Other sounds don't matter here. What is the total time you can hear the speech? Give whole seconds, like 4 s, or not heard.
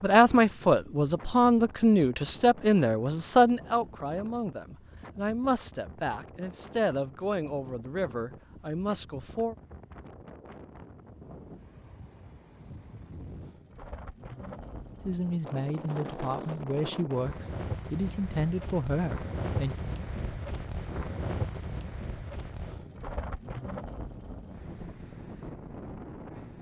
14 s.